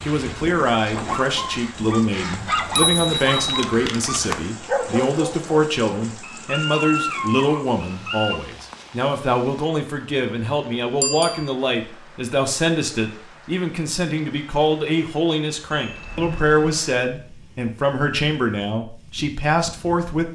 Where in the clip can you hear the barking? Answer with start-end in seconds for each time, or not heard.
0.9-8.4.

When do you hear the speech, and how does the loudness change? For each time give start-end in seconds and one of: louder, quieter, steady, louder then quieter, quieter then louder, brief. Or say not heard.
0.0-20.3 steady.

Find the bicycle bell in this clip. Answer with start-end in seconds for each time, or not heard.
2.3-3.6, 11.0-11.5, 15.7-16.8.